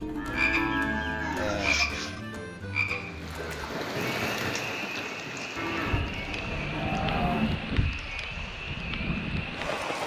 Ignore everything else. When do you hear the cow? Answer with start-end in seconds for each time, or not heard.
0.1-1.6, 5.5-7.5.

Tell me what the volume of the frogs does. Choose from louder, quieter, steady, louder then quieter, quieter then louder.
quieter.